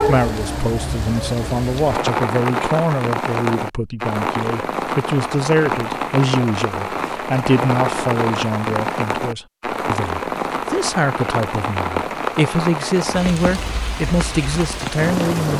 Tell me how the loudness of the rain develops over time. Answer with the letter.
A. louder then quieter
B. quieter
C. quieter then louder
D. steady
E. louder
D.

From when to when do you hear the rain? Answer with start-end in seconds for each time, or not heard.
0.0-15.5.